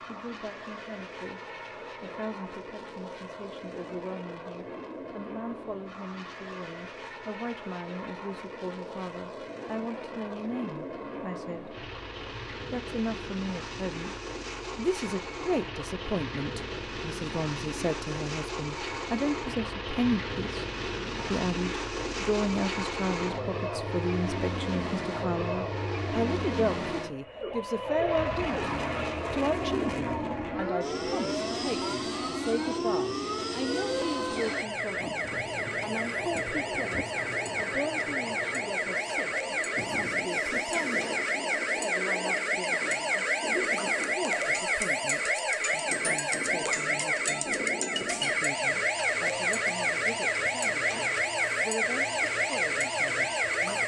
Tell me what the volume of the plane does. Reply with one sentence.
The volume of the plane goes up, then down.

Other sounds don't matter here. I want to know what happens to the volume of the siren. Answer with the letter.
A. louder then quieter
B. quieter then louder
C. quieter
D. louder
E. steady
D.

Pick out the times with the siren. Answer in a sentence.
You can hear the siren from 27.4 to 53.8 s.